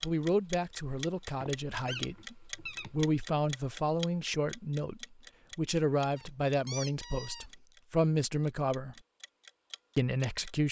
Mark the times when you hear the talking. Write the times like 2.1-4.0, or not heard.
0.0-8.9, 9.9-10.6.